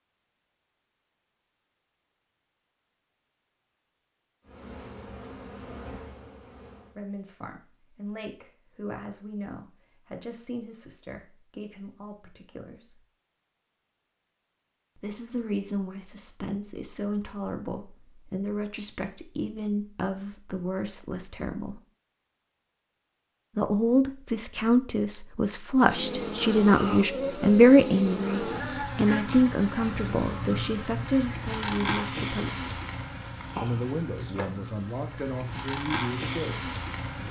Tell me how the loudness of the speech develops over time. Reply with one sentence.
The volume of the speech goes up, then down.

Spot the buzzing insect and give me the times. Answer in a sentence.
The buzzing insect can be heard from 4.5 to 7.0 s and from 25.8 to 37.2 s.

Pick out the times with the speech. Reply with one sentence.
You can hear the speech from 7.0 to 13.0 s, from 14.9 to 21.8 s, from 23.6 to 32.7 s and from 33.6 to 37.2 s.